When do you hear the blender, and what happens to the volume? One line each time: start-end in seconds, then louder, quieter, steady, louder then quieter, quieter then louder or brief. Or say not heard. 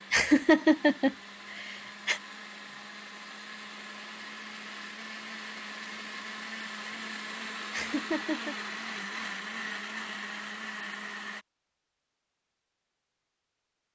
0.0-11.4 louder.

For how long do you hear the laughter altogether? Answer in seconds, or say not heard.
3 s.